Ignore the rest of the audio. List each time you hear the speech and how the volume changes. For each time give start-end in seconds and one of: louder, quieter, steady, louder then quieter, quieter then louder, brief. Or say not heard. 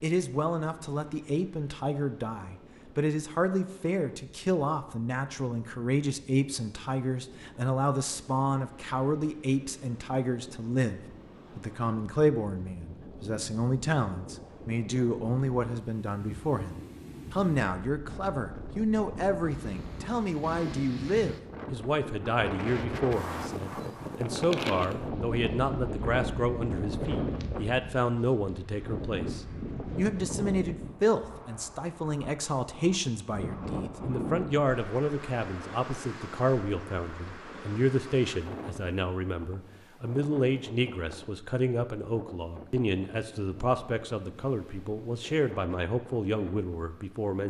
0.0-47.4 steady.